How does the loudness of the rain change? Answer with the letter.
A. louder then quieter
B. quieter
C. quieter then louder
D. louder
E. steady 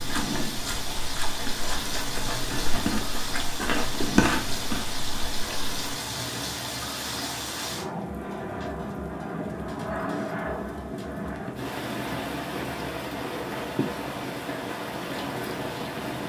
E.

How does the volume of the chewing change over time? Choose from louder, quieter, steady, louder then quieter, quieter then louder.
louder.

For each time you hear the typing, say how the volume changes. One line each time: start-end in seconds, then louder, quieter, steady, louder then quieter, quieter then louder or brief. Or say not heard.
not heard.